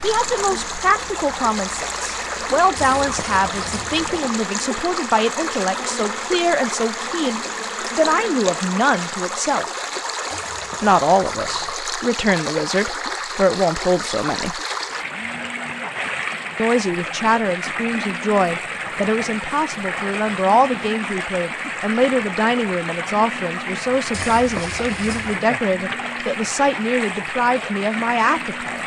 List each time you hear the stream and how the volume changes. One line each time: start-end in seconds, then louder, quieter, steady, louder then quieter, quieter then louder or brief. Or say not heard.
0.0-28.8 steady.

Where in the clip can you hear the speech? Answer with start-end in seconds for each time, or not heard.
0.0-9.7, 10.8-14.6, 16.6-28.8.